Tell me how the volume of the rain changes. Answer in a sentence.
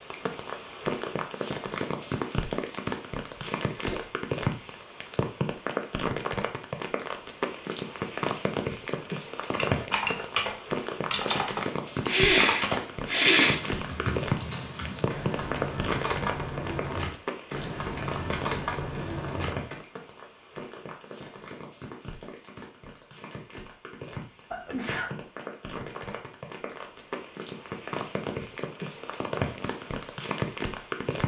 The loudness of the rain goes down, then up.